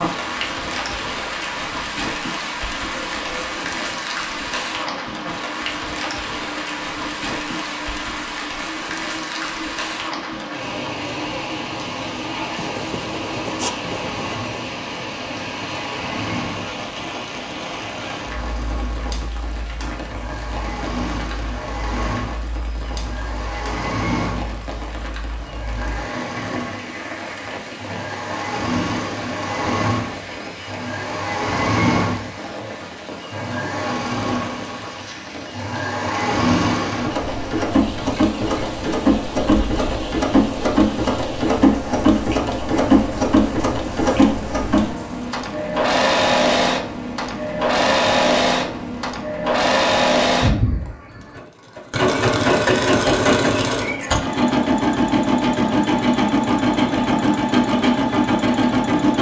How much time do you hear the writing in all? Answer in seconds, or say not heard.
2 s.